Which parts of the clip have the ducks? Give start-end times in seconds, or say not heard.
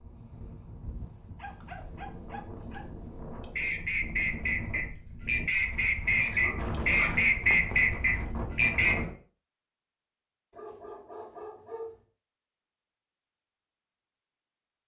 3.4-8.9.